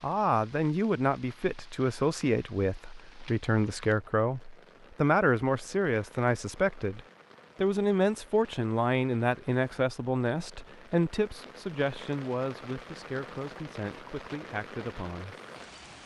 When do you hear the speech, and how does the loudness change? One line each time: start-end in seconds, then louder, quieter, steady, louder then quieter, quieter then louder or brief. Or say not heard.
0.0-15.3 quieter.